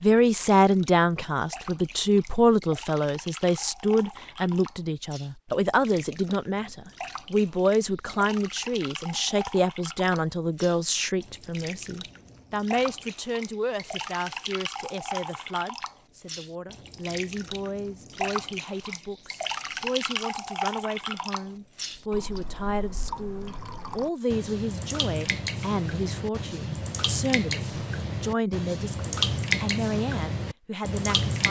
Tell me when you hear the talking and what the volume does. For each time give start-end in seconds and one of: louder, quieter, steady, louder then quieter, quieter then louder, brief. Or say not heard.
0.0-31.4 quieter.